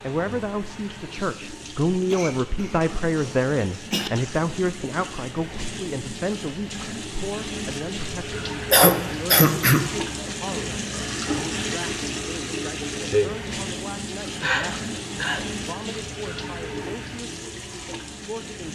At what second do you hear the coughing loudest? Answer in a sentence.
The loudest moment of the coughing is at 9 seconds.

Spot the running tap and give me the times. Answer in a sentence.
The running tap can be heard from 0.0 to 18.6 s.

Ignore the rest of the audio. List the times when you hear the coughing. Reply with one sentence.
The coughing can be heard from 2.1 to 4.1 s, from 8.7 to 10.2 s and from 14.4 to 15.5 s.